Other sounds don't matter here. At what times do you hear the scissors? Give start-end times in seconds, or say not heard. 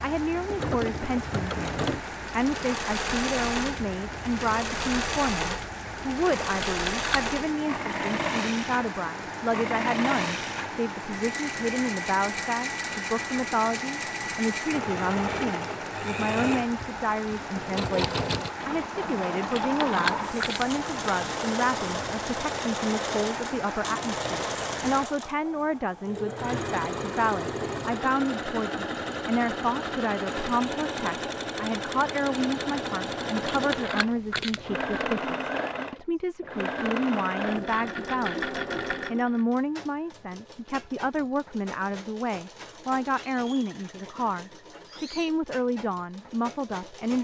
6.6-7.2, 19.6-21.1, 33.5-35.0.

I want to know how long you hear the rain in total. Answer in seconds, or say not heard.
25 s.